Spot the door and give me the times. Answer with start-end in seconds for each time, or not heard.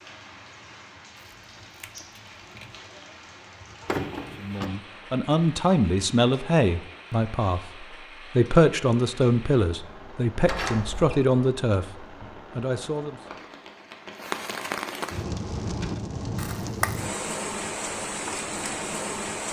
3.9-4.7, 10.4-11.2.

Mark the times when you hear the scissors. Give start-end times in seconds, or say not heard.
1.1-2.8, 16.4-17.1.